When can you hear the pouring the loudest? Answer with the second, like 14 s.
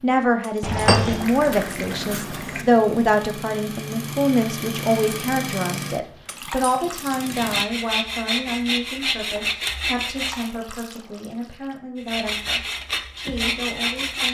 1 s.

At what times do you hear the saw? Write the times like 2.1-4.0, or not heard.
7.2-10.5, 11.9-14.2.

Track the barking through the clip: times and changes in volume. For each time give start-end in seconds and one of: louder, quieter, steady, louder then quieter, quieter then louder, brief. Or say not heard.
not heard.